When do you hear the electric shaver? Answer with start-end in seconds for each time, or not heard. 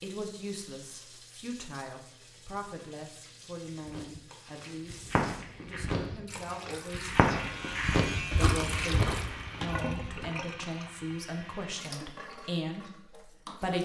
6.9-11.8.